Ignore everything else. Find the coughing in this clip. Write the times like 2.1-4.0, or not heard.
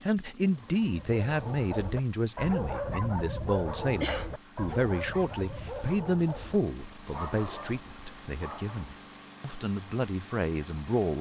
4.0-4.8.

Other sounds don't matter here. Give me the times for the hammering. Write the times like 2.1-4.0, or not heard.
not heard.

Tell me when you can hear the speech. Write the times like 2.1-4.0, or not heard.
0.0-11.1.